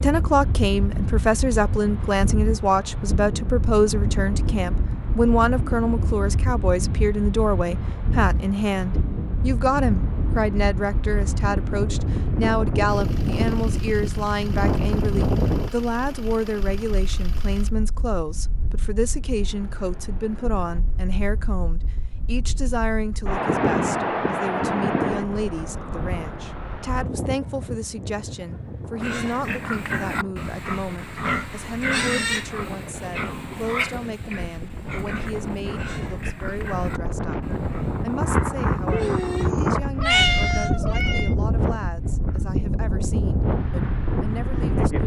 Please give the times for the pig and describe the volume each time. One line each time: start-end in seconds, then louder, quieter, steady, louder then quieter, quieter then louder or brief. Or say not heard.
29.0-39.5 quieter.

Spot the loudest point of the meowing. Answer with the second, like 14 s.
40 s.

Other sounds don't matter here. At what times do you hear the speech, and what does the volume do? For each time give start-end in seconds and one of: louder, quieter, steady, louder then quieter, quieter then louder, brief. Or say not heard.
0.0-45.0 quieter.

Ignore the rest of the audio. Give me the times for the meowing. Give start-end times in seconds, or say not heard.
38.9-41.3.